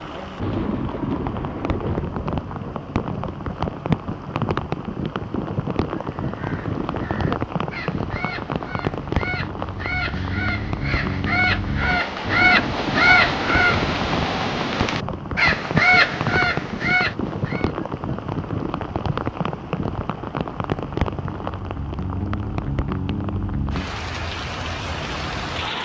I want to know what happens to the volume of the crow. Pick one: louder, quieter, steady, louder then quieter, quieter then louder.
louder.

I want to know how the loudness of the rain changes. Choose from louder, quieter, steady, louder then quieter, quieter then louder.
steady.